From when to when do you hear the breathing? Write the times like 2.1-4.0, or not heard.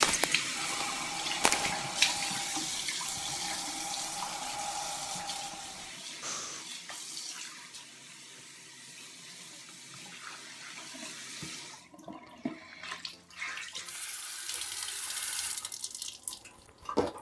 0.6-6.7.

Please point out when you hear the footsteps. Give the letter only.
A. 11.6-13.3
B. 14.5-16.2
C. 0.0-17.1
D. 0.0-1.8
D.